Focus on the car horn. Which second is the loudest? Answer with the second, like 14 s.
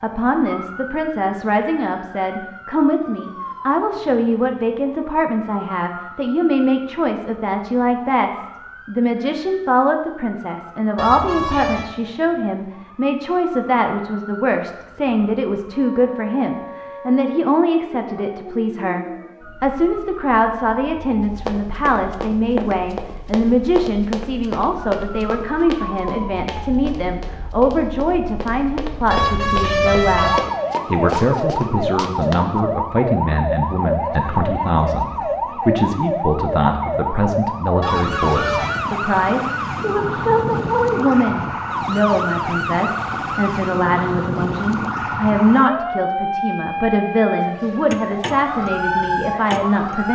30 s.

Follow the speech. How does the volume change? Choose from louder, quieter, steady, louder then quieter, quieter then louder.
steady.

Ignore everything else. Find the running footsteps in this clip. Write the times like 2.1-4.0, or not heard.
21.2-32.5.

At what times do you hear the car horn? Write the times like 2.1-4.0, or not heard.
10.9-11.9, 29.1-30.4, 37.8-38.9.